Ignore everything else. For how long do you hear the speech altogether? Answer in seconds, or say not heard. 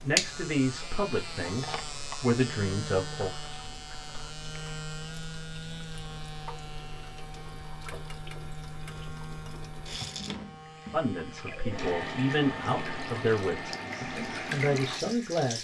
8 s.